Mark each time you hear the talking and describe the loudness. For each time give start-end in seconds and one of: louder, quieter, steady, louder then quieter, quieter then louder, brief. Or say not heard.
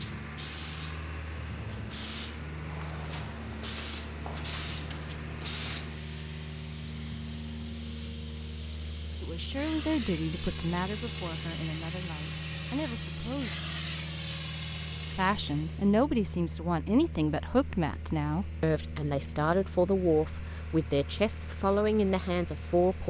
9.2-13.5 quieter then louder
15.1-23.0 steady.